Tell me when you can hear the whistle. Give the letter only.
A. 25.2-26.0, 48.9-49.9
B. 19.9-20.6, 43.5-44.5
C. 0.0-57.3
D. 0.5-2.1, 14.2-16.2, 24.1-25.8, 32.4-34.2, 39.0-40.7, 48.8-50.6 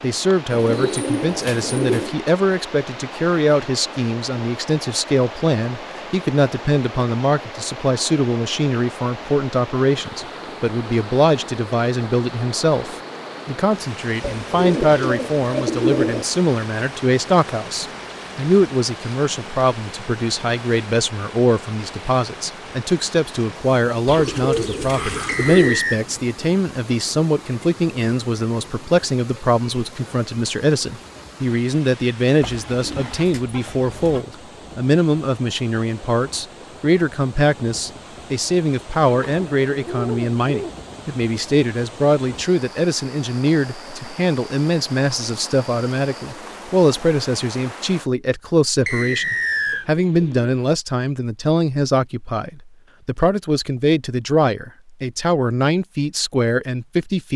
A.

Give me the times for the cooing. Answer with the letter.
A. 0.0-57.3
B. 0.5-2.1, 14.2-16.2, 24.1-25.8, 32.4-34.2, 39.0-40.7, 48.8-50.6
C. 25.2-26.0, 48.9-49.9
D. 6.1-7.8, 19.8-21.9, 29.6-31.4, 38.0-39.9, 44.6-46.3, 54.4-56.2
B.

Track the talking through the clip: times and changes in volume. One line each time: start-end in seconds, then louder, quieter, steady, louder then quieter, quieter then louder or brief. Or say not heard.
0.0-57.3 steady.